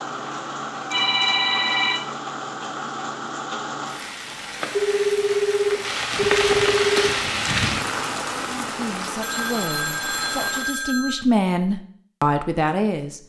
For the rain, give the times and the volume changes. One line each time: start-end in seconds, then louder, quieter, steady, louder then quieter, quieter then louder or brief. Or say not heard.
0.0-10.8 louder then quieter.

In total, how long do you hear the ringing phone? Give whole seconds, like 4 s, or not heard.
6 s.